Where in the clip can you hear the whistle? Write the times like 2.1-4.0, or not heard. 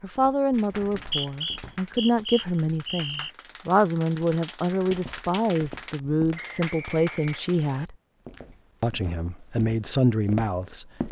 0.9-3.3, 6.3-7.9.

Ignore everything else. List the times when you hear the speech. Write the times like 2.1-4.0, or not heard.
0.0-8.0, 8.8-10.9.